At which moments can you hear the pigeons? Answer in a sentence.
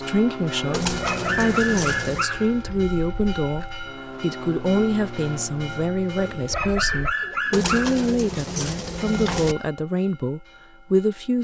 The pigeons can be heard from 0.7 to 2.2 s and from 7.5 to 9.6 s.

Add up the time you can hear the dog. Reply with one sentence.
You can hear the dog for 4 seconds altogether.